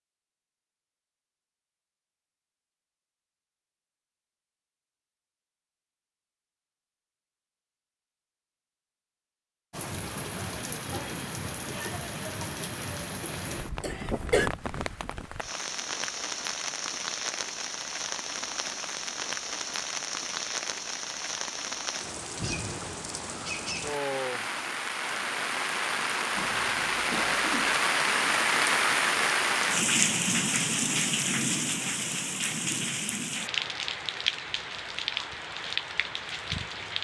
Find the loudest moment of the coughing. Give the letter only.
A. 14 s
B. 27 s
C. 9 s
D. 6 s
A.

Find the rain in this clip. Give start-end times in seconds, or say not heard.
9.7-36.9.